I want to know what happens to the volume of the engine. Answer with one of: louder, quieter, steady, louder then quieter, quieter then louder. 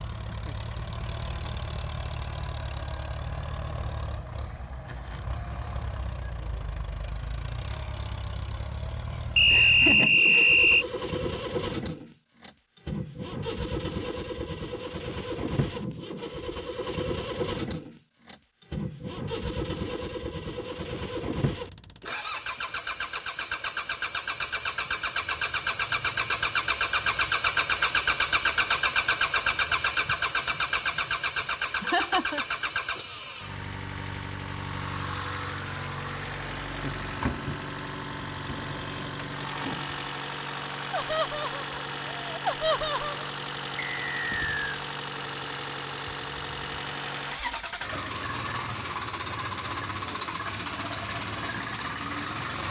louder then quieter.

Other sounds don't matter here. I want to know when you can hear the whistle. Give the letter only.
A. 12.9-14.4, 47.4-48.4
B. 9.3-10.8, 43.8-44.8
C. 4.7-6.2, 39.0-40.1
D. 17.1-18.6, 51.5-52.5
B.